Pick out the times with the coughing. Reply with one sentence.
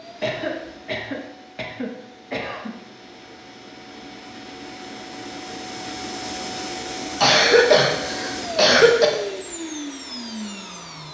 The coughing can be heard from 0.2 to 2.7 s and from 7.1 to 9.1 s.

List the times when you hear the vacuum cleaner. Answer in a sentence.
The vacuum cleaner can be heard from 0.0 to 11.0 s.